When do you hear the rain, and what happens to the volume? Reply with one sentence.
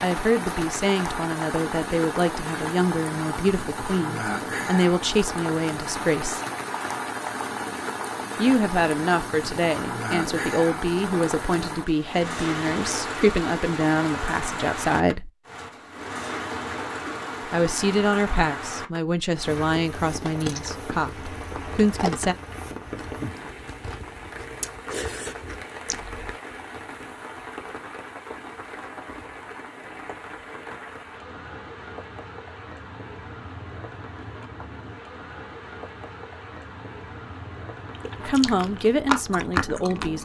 You can hear the rain from 0.0 to 40.2 s, getting quieter.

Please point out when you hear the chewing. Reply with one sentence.
You can hear the chewing from 19.9 to 26.4 s and from 38.0 to 40.2 s.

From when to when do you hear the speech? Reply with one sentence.
The speech can be heard from 0.0 to 6.4 s, from 8.3 to 15.3 s, from 17.5 to 22.4 s and from 38.2 to 40.2 s.